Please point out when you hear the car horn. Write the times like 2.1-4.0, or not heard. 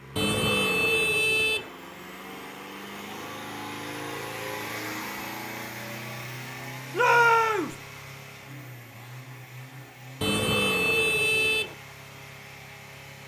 0.1-1.7, 10.2-11.8.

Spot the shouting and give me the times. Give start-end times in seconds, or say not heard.
6.9-7.8.